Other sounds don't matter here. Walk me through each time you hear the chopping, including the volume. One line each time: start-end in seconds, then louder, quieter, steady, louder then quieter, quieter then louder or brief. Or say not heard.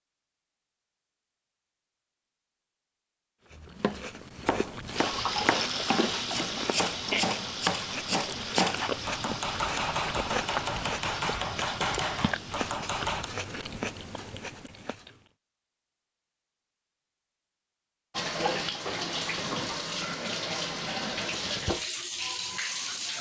3.5-13.3 steady.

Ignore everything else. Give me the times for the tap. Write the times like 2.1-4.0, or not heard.
5.0-12.7, 18.1-23.1.